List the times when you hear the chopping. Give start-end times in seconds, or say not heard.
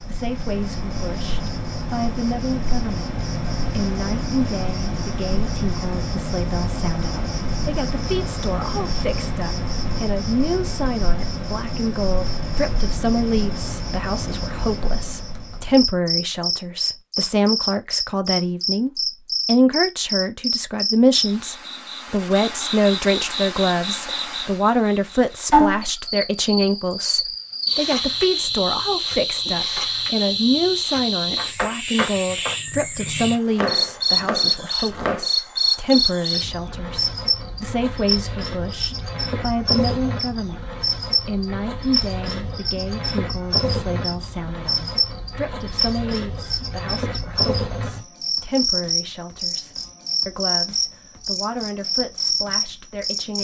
33.5-35.3.